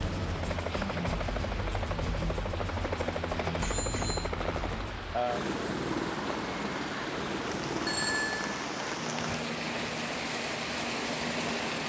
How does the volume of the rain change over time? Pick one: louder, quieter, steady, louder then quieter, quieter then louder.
louder.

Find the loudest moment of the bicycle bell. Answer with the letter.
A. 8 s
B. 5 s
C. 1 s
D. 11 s
A.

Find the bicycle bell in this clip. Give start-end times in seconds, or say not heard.
3.6-4.3, 7.8-8.5.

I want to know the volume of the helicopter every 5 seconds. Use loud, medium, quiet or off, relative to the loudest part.
loud, loud, medium.